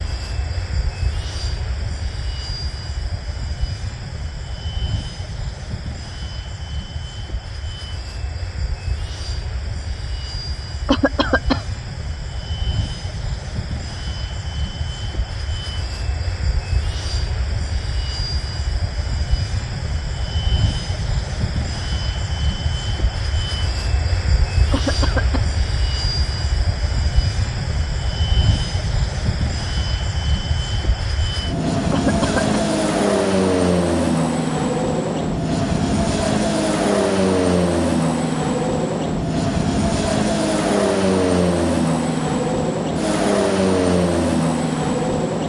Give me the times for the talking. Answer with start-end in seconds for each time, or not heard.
not heard.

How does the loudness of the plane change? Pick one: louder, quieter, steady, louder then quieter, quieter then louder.
louder.